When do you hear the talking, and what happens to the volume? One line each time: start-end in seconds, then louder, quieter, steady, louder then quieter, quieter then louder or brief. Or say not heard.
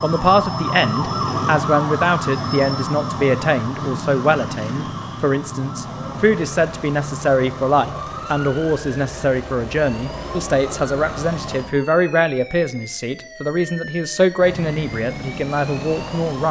0.0-16.4 steady.